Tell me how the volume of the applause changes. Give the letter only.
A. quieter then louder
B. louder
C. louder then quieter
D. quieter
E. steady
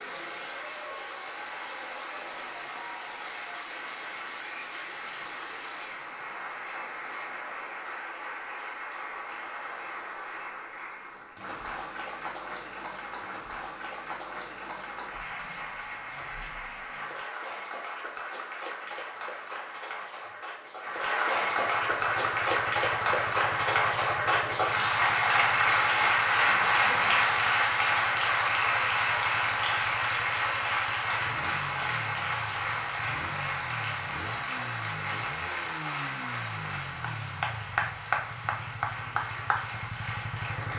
C.